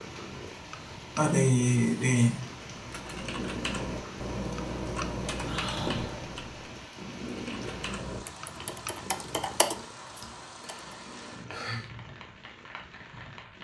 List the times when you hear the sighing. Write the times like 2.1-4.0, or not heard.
1.1-2.4, 5.5-6.3, 10.2-11.9.